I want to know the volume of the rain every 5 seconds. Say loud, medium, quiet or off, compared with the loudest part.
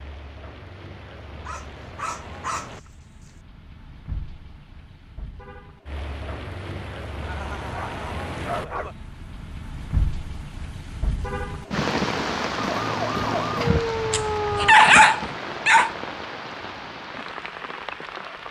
quiet, medium, loud, medium.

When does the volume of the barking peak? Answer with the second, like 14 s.
15 s.